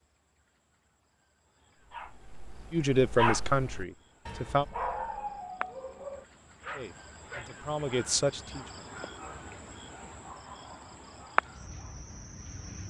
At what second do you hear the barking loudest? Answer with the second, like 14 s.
3 s.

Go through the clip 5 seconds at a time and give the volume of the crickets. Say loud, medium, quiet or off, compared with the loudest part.
quiet, medium, loud.